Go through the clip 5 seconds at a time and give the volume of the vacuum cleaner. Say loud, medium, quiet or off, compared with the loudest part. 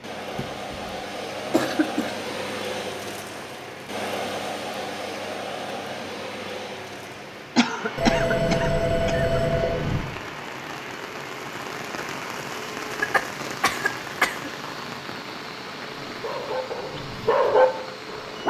loud, loud, medium, medium.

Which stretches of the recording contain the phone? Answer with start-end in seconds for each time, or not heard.
8.0-10.0.